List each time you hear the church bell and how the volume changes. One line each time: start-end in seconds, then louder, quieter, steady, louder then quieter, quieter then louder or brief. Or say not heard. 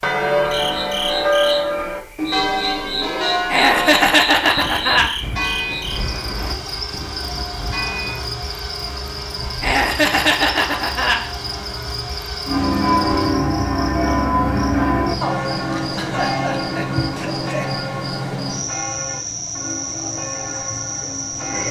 0.0-8.3 quieter
12.4-21.6 quieter.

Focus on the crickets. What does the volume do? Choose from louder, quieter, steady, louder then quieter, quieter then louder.
steady.